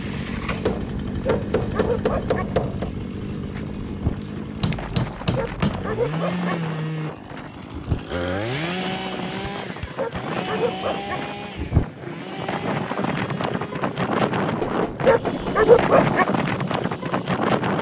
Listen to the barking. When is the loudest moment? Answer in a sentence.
The volume of the barking peaks at 16 seconds.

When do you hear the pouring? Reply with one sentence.
You can't hear the pouring here.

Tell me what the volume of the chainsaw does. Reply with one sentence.
The volume of the chainsaw goes down.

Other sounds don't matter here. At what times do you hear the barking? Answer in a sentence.
You can hear the barking from 1.2 to 2.5 s, from 5.3 to 6.5 s, from 9.9 to 11.2 s and from 15.1 to 16.2 s.